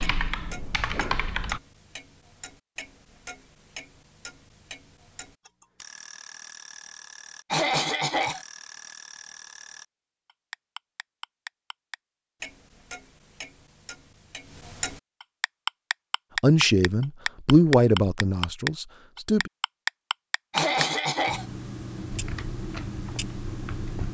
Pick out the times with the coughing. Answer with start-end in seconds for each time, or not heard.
7.5-8.4, 20.5-21.4.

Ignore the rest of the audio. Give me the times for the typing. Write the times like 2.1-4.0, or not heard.
0.0-1.6, 22.1-24.0.